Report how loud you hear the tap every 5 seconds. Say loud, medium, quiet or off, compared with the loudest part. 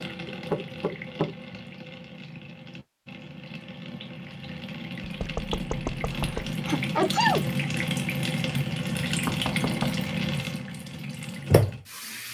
medium, loud, loud.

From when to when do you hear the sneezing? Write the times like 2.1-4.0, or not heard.
6.1-7.5.